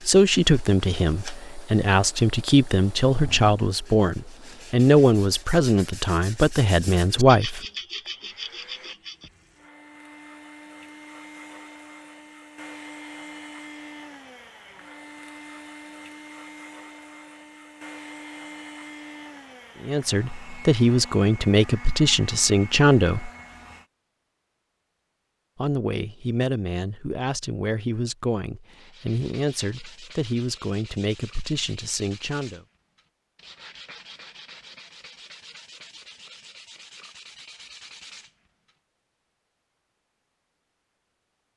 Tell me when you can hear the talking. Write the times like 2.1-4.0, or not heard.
0.1-7.7, 19.8-23.3, 25.6-32.6.